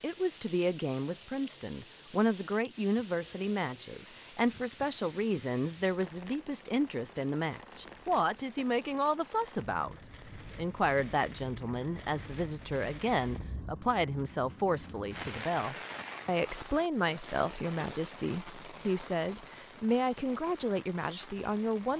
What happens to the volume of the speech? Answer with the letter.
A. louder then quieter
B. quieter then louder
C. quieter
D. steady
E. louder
D.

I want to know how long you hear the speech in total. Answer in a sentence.
You can hear the speech for 22 seconds altogether.